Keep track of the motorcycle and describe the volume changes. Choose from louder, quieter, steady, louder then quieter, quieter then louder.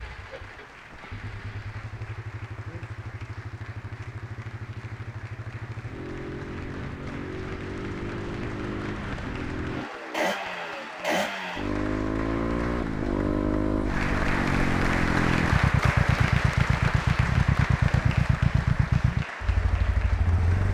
louder.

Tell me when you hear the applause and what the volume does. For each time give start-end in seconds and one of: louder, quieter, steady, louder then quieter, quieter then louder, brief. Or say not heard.
0.0-20.6 louder.